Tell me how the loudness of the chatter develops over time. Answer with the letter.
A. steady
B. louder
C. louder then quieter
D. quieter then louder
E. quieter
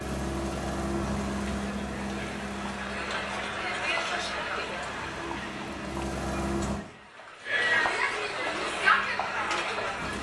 B.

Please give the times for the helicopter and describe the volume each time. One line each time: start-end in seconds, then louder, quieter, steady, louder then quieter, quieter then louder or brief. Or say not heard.
0.0-6.8 quieter then louder
8.7-10.1 brief.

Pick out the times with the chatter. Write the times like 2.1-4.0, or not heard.
0.0-10.1.